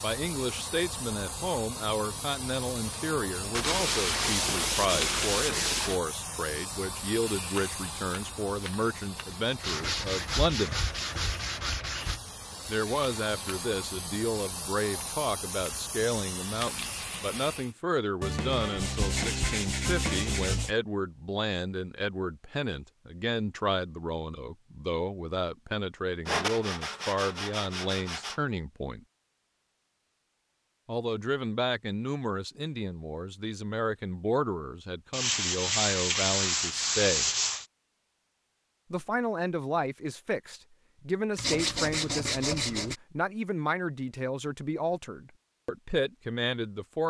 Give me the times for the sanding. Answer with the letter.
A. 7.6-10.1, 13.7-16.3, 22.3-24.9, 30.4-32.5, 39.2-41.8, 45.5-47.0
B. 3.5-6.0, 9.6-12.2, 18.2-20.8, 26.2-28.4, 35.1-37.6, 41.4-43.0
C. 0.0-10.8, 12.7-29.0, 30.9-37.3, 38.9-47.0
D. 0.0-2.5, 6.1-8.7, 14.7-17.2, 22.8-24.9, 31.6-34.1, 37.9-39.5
B.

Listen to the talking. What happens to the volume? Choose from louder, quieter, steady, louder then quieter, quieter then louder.
steady.